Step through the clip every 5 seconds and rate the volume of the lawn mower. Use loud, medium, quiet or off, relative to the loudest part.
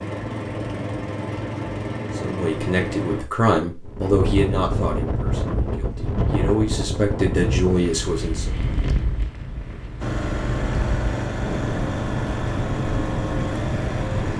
loud, off, loud.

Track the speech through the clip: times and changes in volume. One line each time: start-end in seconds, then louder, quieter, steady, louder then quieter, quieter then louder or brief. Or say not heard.
2.1-8.6 quieter then louder.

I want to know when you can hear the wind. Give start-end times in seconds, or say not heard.
3.9-14.3.